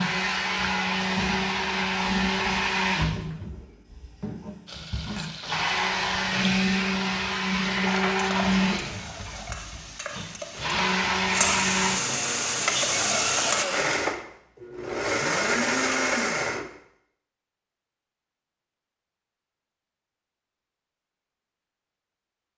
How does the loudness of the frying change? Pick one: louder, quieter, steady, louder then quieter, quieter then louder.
louder.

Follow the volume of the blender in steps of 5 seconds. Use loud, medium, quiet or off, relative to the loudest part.
loud, loud, loud, loud, off.